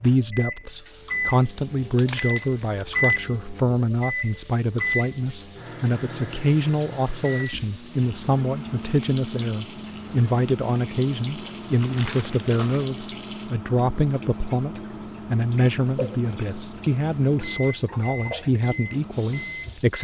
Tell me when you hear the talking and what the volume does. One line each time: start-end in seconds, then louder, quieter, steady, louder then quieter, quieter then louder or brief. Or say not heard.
0.0-19.9 steady.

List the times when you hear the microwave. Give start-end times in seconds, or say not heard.
0.0-19.9.